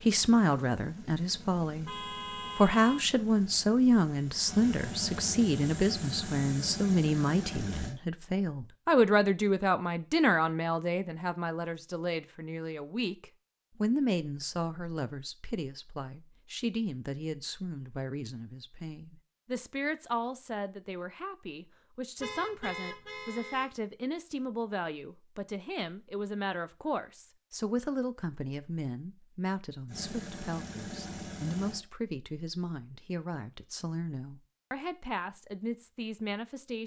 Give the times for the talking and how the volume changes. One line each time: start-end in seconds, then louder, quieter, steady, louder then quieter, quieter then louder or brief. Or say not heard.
0.0-1.9 brief
2.5-36.8 quieter.